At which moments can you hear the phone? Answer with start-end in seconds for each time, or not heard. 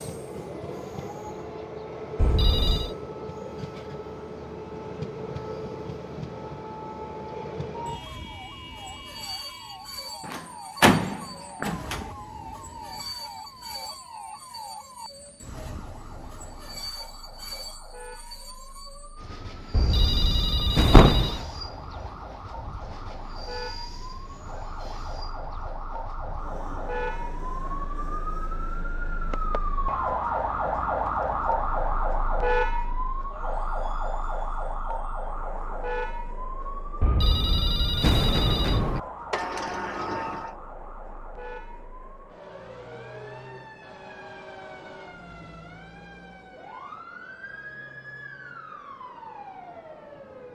2.1-2.9, 19.7-21.4, 37.0-39.0.